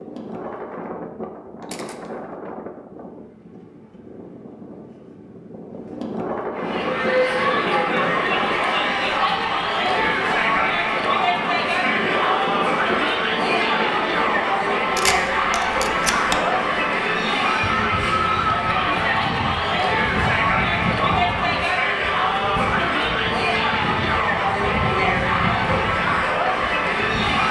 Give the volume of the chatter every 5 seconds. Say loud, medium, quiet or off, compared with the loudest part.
off, loud, loud, loud, loud, loud.